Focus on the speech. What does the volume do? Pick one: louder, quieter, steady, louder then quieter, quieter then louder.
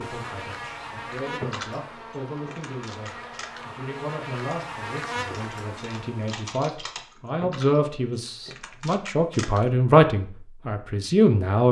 louder.